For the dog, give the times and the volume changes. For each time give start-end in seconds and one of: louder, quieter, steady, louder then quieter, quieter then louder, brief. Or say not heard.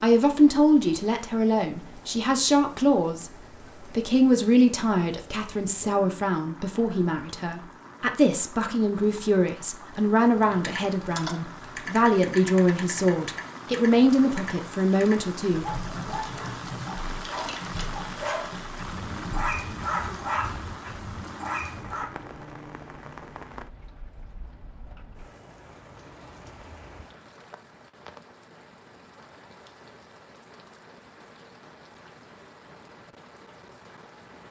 15.6-22.1 louder then quieter.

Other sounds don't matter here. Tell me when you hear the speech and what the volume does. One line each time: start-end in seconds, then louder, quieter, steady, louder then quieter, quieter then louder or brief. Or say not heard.
0.0-16.1 steady.